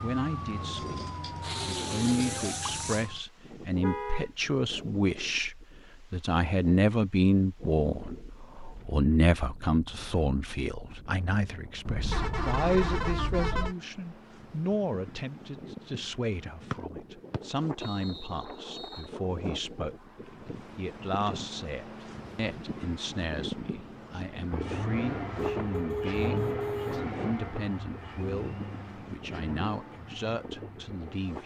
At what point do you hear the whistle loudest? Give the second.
17 s.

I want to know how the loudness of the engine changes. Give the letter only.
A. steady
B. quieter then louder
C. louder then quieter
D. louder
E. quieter
E.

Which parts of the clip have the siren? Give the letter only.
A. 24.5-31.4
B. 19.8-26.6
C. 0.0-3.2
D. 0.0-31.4
C.